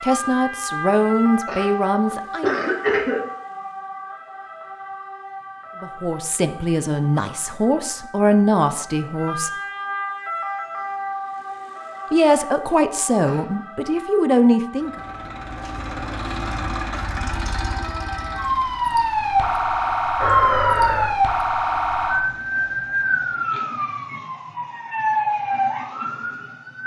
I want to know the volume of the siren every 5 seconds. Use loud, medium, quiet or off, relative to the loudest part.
medium, quiet, medium, loud, loud, loud.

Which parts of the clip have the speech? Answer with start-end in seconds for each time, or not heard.
0.0-2.6, 5.8-9.5, 12.1-14.9.